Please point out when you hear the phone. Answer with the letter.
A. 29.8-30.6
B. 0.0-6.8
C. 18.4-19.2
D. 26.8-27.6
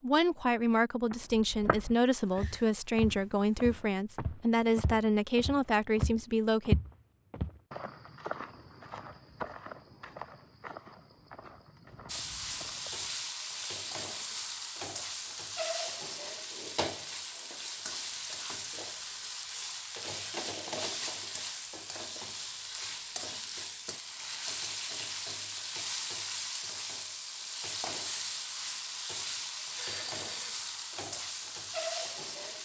A.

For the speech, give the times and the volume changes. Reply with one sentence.
You can hear the speech from 0.0 to 6.8 s, at a steady volume.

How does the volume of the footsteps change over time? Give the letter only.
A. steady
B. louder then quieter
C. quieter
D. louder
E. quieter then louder
B.